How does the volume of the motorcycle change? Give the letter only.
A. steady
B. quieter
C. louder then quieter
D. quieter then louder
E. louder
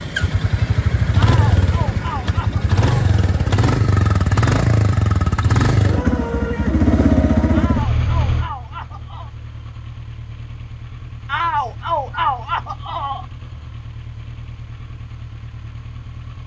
B.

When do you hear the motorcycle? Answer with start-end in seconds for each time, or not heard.
0.0-16.4.